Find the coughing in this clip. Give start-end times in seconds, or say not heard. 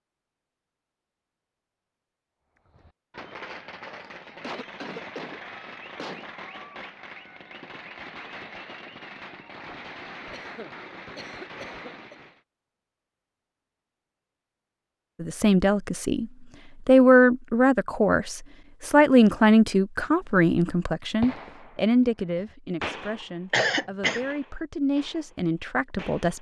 4.0-6.2, 10.3-12.2, 23.5-24.2.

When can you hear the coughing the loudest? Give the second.
24 s.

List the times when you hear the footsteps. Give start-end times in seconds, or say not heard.
not heard.